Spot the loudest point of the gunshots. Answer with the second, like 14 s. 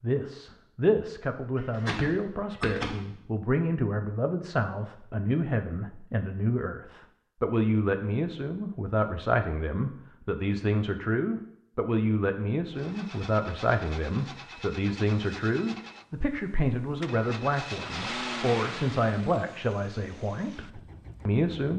3 s.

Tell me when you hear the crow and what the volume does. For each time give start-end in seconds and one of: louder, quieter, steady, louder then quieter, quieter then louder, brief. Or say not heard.
not heard.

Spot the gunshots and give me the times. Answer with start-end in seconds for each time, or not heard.
1.6-3.2.